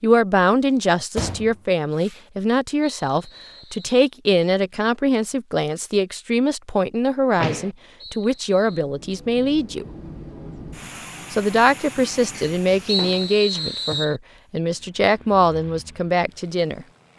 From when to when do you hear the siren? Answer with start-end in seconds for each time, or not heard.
not heard.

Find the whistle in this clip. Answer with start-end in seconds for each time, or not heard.
3.0-4.0, 8.0-8.8, 12.8-14.2.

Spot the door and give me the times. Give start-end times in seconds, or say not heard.
1.1-2.2, 7.3-7.8, 12.3-13.2.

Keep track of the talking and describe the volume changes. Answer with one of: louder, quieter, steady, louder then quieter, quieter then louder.
steady.